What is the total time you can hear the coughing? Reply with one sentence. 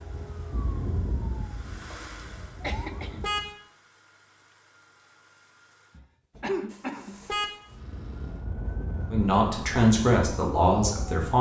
The coughing can be heard for 3 seconds in total.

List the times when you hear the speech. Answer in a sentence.
The speech can be heard from 9.1 to 11.3 s.